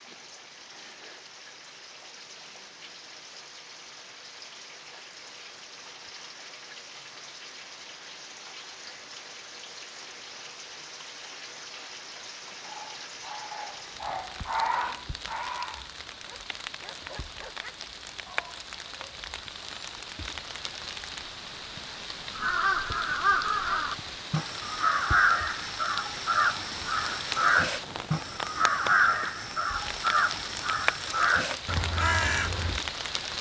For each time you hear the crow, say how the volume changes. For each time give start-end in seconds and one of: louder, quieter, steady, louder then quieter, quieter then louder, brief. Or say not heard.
22.4-32.8 steady.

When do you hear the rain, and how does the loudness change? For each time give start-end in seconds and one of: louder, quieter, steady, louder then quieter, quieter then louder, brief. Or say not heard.
0.0-33.3 louder.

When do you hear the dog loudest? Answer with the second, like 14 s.
15 s.